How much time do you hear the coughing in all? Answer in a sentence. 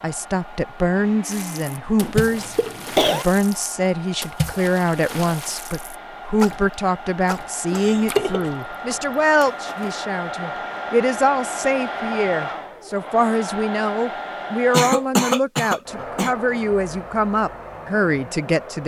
The coughing can be heard for 4 seconds in total.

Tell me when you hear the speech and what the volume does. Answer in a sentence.
The speech can be heard from 0.0 to 18.8 s, at a steady volume.